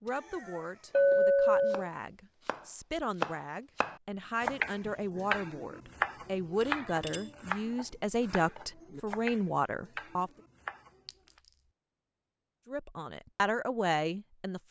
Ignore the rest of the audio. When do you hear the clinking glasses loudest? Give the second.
1 s.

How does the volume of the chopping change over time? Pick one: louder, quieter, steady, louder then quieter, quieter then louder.
louder then quieter.